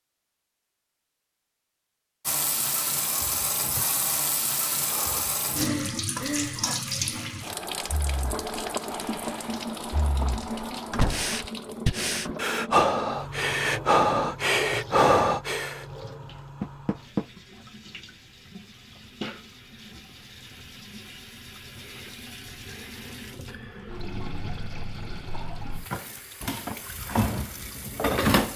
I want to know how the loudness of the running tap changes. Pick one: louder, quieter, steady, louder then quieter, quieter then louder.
quieter then louder.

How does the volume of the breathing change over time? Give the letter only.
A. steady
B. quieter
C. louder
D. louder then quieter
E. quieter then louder
E.